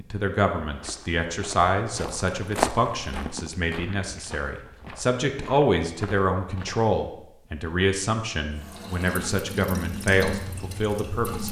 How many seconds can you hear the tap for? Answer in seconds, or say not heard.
3 s.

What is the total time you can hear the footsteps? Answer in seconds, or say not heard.
6 s.